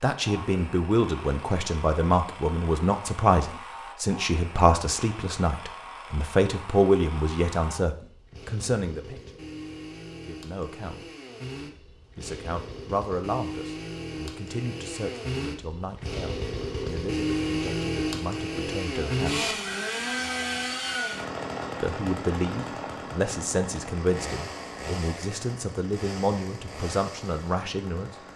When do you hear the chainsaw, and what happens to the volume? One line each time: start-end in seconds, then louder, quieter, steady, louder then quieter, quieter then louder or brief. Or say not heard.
0.1-28.3 louder then quieter.